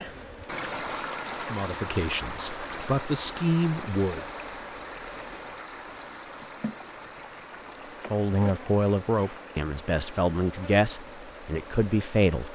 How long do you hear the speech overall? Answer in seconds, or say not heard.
7 s.